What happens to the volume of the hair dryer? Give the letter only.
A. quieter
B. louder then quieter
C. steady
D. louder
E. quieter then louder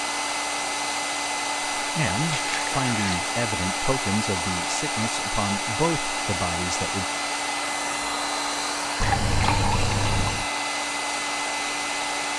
C.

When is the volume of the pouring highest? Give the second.
10 s.